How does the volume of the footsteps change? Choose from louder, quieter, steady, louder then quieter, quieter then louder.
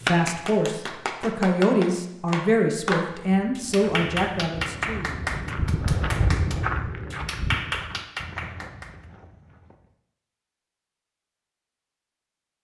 louder then quieter.